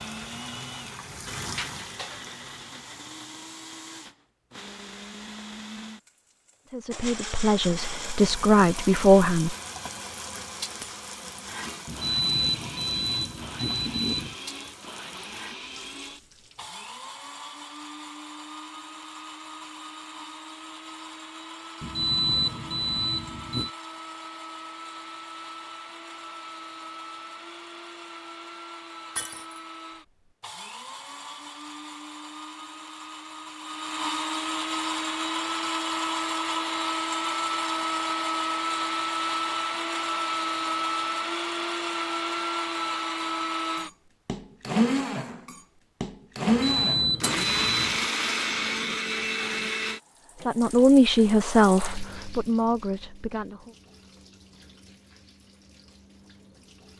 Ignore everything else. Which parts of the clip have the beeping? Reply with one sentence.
You can hear the beeping from 11.8 to 14.3 s, from 21.8 to 23.7 s and from 46.5 to 48.1 s.